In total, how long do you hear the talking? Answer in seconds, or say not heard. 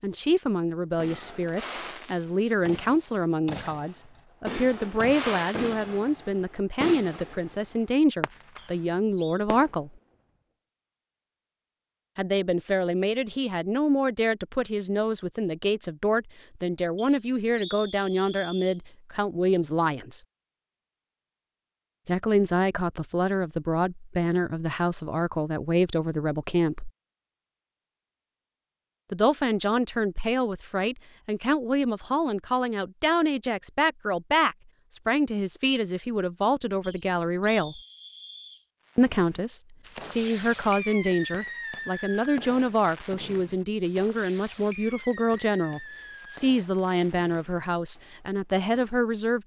42 s.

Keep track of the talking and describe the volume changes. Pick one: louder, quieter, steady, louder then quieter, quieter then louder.
steady.